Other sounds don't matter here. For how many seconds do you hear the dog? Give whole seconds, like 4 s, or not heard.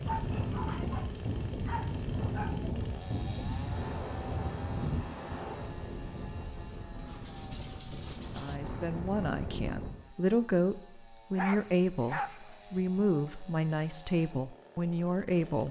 6 s.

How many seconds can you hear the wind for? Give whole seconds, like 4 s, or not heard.
10 s.